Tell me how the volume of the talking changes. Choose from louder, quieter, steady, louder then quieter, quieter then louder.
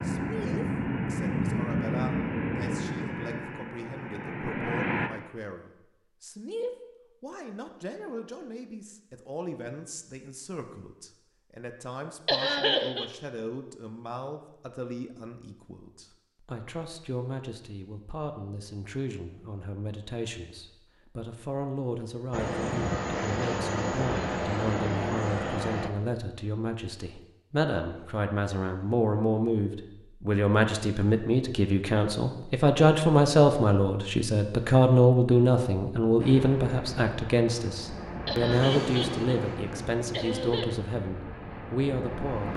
louder.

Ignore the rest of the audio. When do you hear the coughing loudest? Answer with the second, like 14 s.
13 s.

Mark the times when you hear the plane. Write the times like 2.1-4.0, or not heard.
0.0-5.1, 22.3-25.9, 36.1-42.5.